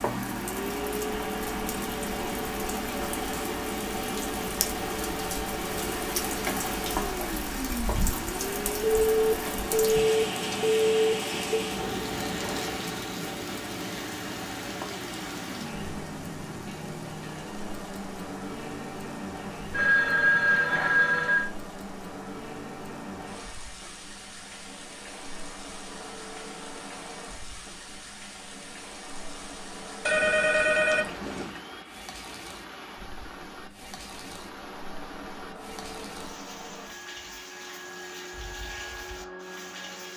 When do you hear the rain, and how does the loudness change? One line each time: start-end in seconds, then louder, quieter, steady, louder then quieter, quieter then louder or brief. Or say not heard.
0.0-40.1 quieter.